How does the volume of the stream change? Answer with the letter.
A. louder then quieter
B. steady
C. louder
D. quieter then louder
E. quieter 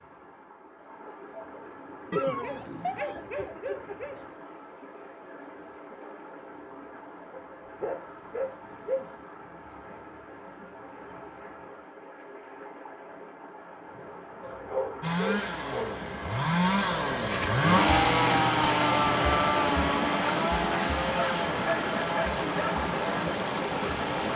C.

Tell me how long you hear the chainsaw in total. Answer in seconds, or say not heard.
9 s.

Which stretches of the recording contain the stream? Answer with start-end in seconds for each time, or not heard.
0.0-24.3.